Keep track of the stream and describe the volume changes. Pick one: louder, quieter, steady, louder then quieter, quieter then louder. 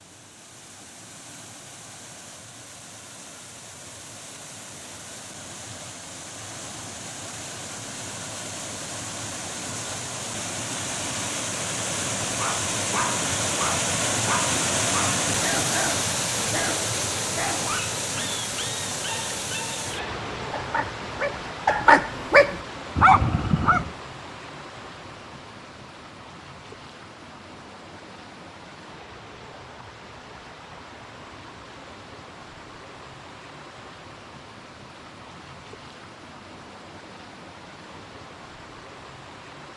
louder then quieter.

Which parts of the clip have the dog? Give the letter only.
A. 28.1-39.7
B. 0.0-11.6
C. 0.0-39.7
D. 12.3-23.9
D.